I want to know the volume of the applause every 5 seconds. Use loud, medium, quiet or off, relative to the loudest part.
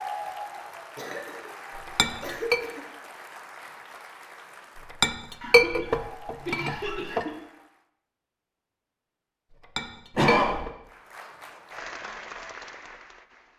loud, medium, loud.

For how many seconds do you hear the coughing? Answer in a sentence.
The coughing can be heard for 4 seconds in total.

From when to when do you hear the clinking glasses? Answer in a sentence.
The clinking glasses can be heard from 1.8 to 2.6 s, from 4.8 to 7.2 s and from 9.5 to 10.7 s.